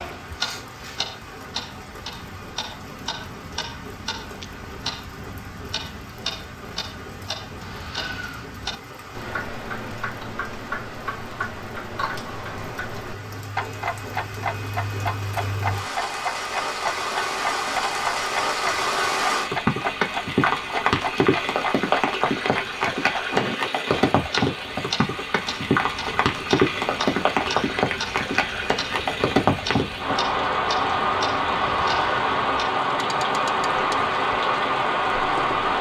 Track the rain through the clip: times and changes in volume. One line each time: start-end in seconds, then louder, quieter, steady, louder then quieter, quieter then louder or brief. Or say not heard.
0.0-35.7 louder.